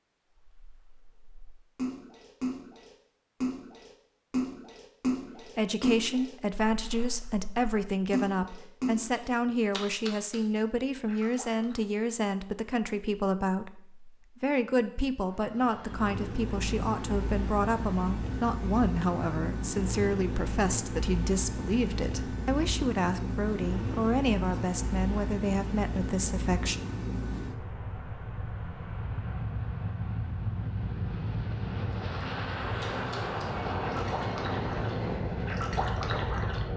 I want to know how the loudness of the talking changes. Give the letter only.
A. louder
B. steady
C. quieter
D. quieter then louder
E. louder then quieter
B.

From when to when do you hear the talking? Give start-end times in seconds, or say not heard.
5.3-26.8.